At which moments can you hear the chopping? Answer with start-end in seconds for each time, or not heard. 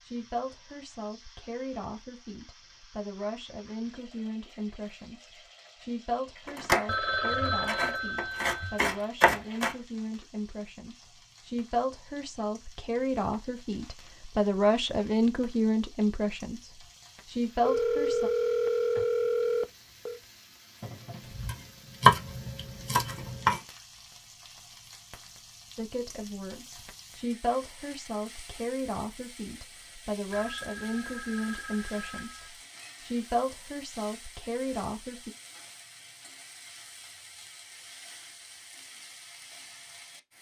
6.5-9.8, 21.4-23.6.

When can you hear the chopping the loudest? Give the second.
22 s.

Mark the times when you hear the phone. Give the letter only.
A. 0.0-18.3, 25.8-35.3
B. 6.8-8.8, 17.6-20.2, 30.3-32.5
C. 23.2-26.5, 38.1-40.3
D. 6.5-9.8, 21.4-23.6
B.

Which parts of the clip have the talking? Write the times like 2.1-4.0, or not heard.
0.0-18.3, 25.8-35.3.